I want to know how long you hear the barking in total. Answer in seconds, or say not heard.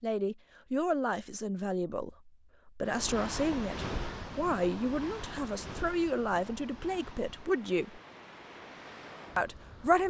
not heard.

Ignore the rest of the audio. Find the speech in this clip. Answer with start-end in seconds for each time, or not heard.
0.0-8.0, 9.3-10.0.